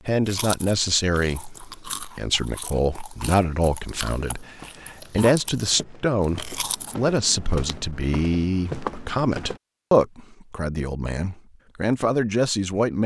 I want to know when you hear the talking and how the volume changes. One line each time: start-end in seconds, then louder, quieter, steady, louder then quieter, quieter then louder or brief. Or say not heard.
0.1-13.0 steady.